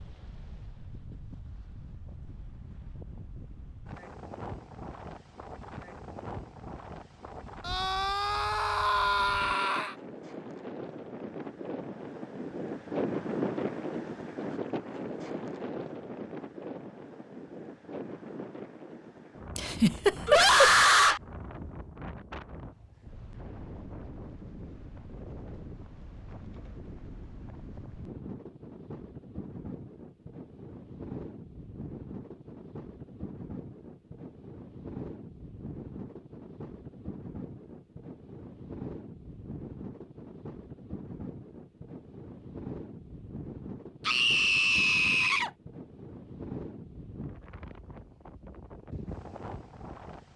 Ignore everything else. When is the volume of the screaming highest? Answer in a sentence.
The loudest moment of the screaming is at 21 seconds.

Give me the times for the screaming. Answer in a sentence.
You can hear the screaming from 7.7 to 9.9 s, from 20.2 to 21.2 s and from 44.0 to 45.5 s.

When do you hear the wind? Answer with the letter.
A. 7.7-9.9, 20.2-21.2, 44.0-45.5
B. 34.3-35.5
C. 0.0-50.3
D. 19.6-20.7
C.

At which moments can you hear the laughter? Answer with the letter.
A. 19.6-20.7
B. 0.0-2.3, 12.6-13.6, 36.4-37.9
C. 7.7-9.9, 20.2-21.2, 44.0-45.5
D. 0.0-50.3
A.